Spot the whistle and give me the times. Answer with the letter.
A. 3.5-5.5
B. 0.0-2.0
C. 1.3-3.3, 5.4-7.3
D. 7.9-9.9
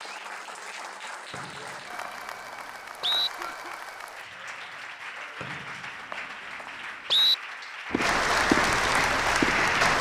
C.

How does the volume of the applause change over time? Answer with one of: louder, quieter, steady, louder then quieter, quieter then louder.
louder.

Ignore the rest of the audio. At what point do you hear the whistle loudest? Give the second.
7 s.